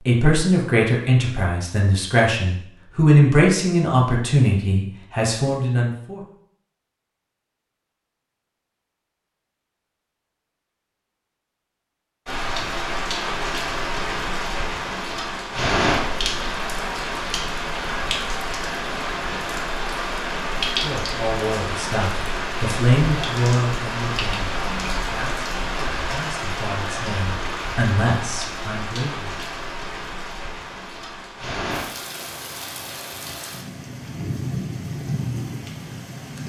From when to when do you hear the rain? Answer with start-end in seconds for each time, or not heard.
12.2-36.4.